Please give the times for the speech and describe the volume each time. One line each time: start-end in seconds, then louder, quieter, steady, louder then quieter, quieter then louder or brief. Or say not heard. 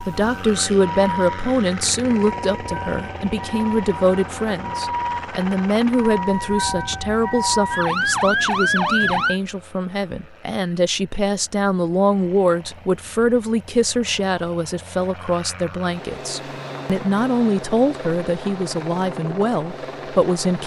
0.1-20.6 steady.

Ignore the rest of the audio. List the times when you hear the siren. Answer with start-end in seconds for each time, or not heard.
0.0-9.3.